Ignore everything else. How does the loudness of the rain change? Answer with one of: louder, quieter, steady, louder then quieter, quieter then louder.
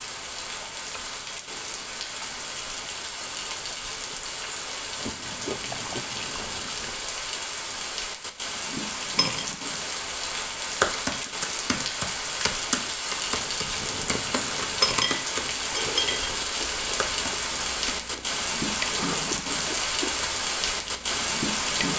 louder.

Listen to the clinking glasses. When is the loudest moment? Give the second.
15 s.